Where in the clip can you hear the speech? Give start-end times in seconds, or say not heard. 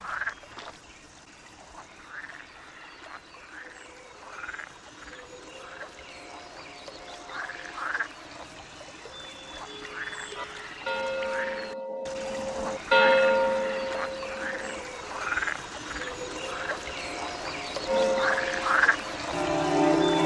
not heard.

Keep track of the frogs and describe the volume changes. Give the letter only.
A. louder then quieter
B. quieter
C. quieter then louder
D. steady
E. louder
E.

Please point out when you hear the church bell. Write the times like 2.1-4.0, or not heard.
10.3-14.8, 17.9-20.2.